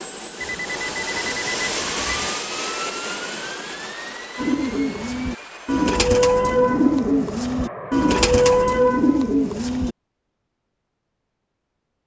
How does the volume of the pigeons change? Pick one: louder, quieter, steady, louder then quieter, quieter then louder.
louder.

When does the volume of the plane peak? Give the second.
2 s.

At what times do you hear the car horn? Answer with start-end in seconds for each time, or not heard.
not heard.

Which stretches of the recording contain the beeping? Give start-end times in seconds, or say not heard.
0.4-2.4.